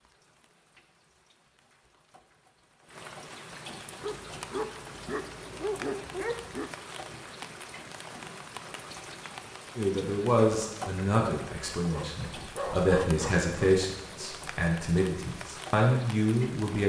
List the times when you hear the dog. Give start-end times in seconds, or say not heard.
4.0-6.7, 11.9-13.8.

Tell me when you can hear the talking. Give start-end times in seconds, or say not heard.
9.8-16.8.